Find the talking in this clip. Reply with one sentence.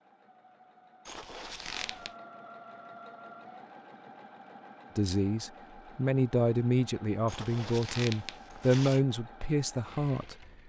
The talking can be heard from 5.0 to 10.4 s.